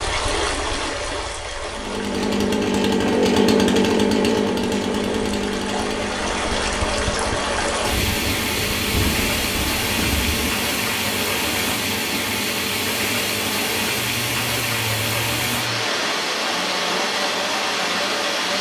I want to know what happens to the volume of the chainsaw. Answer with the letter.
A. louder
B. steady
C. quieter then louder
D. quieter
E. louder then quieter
D.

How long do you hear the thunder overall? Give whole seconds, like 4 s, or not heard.
3 s.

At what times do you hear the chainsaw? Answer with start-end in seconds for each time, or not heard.
1.6-18.5.